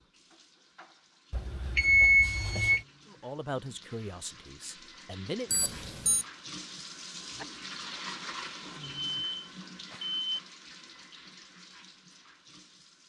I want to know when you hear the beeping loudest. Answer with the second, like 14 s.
2 s.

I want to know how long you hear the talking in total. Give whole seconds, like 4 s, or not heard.
3 s.